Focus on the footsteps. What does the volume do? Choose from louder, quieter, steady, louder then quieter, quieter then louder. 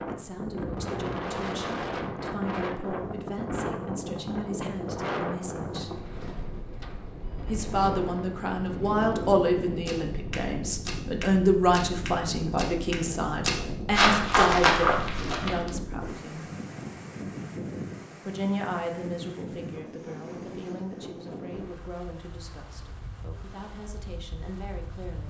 louder.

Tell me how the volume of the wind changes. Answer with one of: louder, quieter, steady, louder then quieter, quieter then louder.
quieter.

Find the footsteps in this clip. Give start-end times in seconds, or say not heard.
9.8-15.7.